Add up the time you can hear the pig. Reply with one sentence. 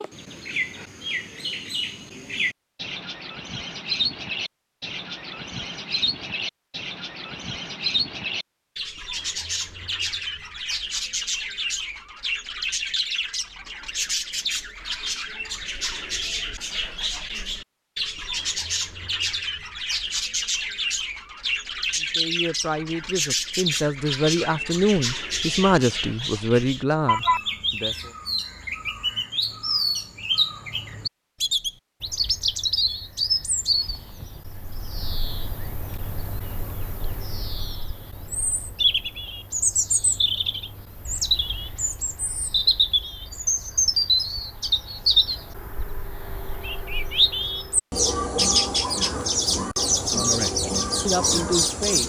The pig can't be heard in this clip.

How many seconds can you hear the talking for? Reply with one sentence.
You can hear the talking for 8 seconds altogether.